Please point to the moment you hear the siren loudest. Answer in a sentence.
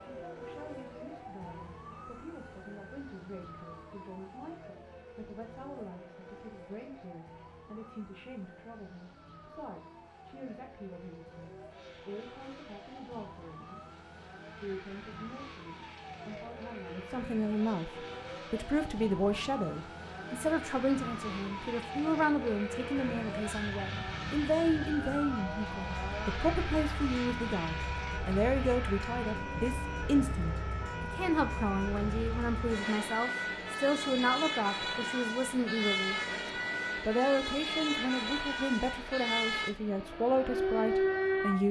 The loudest moment of the siren is at 41 seconds.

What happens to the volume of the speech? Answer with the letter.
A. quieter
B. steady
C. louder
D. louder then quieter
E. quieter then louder
C.